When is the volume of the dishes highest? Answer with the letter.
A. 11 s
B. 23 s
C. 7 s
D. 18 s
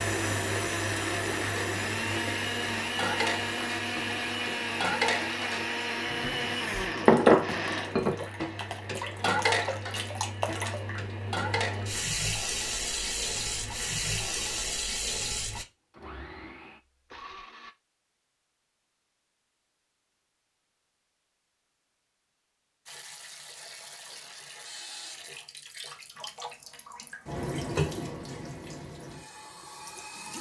C.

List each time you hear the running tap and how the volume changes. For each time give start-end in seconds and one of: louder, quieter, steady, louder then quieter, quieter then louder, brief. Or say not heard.
0.0-15.7 quieter then louder
22.9-30.3 louder then quieter.